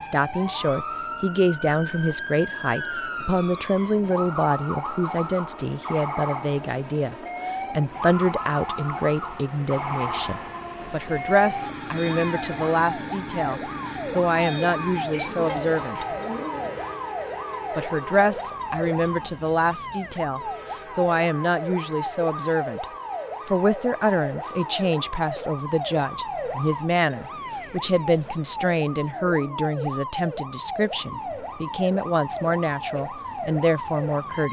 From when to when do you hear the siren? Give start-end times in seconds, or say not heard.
0.0-34.4.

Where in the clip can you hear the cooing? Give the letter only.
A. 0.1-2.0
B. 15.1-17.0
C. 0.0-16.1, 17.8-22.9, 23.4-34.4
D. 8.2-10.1
B.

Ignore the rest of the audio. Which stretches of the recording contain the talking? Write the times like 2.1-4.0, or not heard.
0.0-16.1, 17.8-22.9, 23.4-34.4.